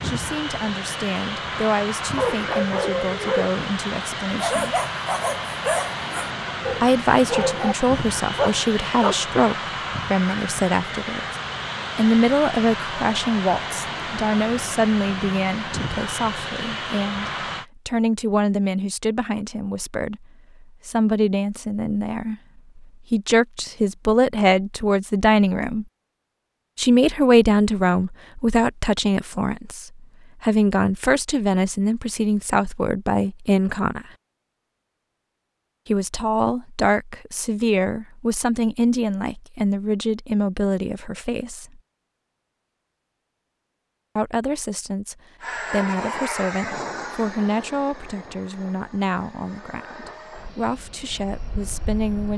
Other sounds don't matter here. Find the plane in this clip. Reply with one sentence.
The plane can be heard from 0.0 to 17.6 s and from 45.4 to 52.3 s.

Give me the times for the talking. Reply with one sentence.
You can hear the talking from 0.0 to 4.8 s, from 6.8 to 11.2 s, from 11.9 to 25.9 s, from 26.8 to 34.0 s, from 35.9 to 41.8 s and from 44.1 to 52.3 s.